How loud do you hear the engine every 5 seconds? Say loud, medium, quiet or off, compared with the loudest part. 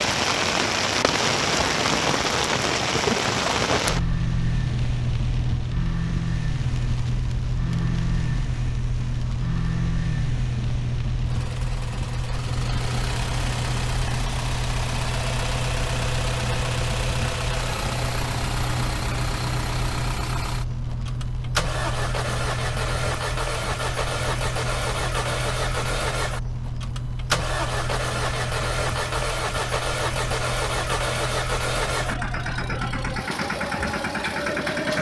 medium, medium, medium, loud, loud, loud, loud.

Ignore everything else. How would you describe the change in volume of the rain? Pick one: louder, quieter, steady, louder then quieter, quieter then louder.
quieter.